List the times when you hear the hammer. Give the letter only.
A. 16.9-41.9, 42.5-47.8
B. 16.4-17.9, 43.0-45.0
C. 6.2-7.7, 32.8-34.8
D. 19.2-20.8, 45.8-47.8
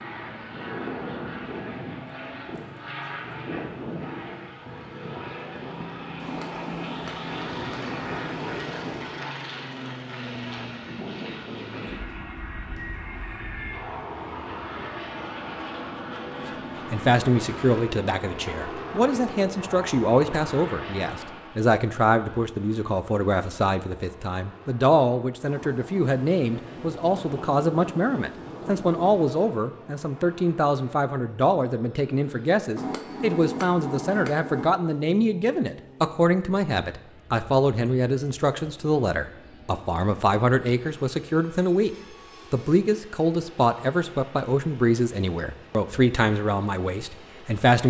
C.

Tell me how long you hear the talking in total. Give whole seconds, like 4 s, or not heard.
30 s.